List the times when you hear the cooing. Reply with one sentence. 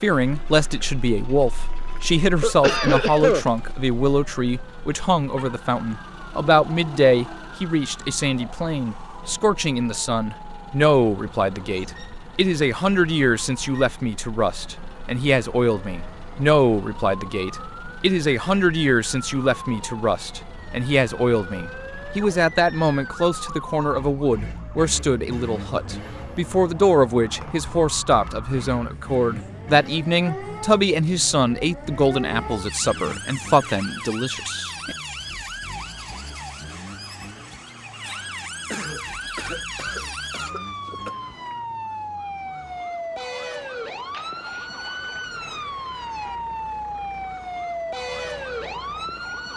The cooing can't be heard in this clip.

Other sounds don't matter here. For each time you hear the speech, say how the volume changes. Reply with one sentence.
The speech can be heard from 0.0 to 35.0 s, at a steady volume.